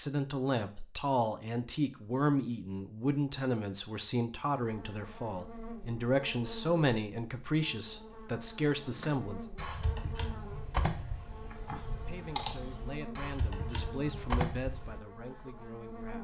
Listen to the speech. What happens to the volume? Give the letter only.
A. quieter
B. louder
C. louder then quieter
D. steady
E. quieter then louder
A.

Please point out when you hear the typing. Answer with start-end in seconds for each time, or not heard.
8.9-15.0.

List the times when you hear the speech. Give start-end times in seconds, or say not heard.
0.0-9.4, 11.9-16.2.